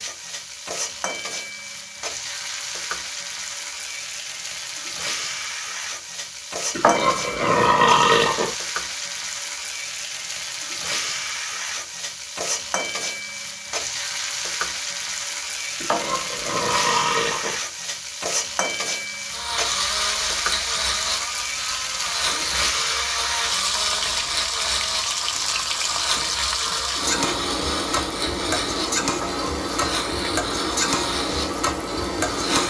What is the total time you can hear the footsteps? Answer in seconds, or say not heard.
not heard.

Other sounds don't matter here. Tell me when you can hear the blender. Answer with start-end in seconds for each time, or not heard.
19.3-32.6.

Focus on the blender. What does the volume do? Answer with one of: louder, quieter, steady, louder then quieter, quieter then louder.
steady.